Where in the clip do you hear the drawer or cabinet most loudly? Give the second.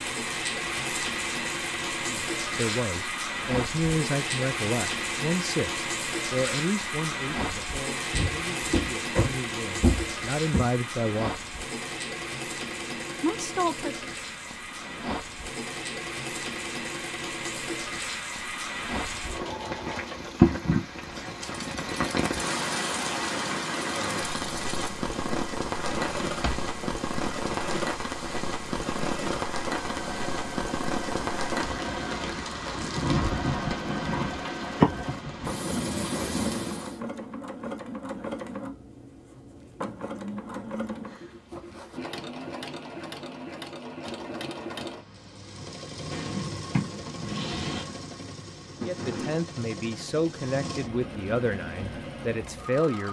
10 s.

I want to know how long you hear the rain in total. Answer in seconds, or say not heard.
37 s.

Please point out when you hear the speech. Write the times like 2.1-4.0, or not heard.
2.0-11.3, 13.2-14.1, 48.8-53.0.